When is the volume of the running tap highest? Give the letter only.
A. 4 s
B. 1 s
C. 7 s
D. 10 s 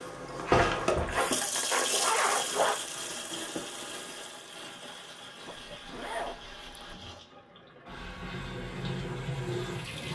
B.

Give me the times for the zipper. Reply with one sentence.
The zipper can be heard from 0.6 to 2.8 s and from 5.5 to 7.0 s.